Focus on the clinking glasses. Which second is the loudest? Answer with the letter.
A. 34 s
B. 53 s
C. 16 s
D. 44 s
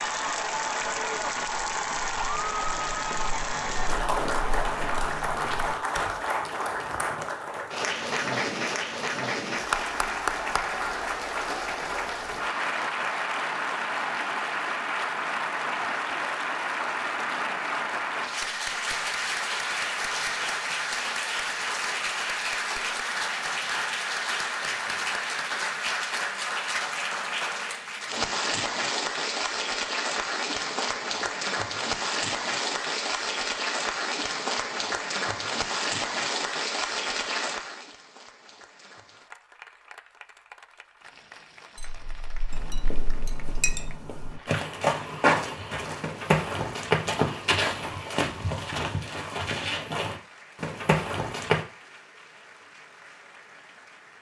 D.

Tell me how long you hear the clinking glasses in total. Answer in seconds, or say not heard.
2 s.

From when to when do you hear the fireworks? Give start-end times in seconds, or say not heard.
not heard.